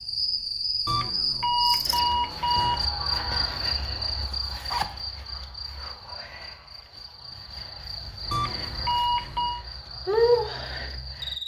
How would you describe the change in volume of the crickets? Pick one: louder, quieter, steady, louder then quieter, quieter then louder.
quieter then louder.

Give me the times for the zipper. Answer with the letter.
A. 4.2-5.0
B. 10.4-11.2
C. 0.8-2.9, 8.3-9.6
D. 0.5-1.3
A.